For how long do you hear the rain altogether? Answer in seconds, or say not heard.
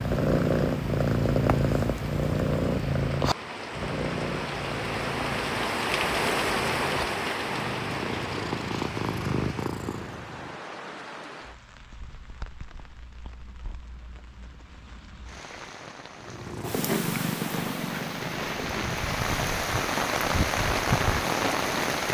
22 s.